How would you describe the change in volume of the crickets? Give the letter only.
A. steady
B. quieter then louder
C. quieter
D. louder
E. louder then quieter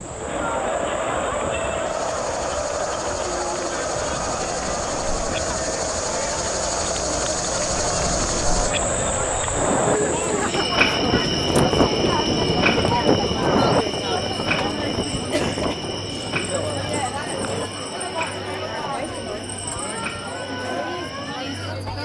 E.